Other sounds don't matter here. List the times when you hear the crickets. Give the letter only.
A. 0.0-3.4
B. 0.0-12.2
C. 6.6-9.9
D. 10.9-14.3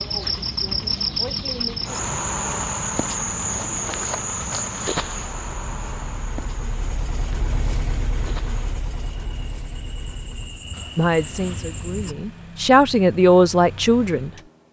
B.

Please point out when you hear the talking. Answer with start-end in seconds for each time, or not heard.
10.9-14.3.